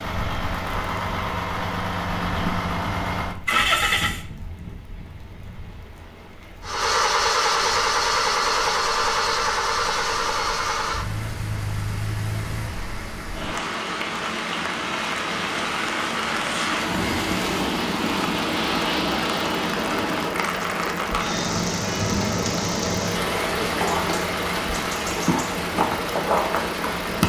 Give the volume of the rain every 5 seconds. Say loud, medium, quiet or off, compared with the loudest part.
quiet, quiet, medium, loud, loud, loud.